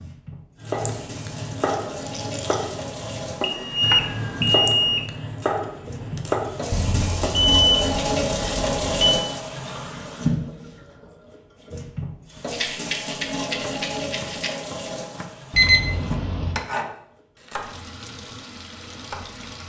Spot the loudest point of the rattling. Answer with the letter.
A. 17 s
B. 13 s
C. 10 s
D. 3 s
B.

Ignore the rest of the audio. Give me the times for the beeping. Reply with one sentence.
You can hear the beeping from 3.4 to 5.0 s, from 6.7 to 9.2 s and from 15.5 to 16.6 s.